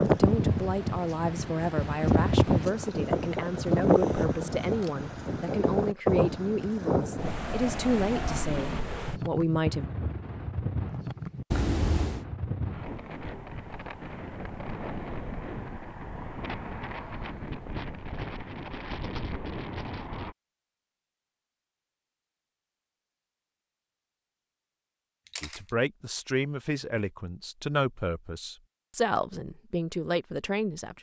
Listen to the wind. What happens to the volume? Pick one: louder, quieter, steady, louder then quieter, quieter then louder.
quieter.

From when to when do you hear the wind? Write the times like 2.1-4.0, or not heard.
0.0-20.4.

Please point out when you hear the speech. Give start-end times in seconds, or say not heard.
0.0-9.8, 25.4-30.9.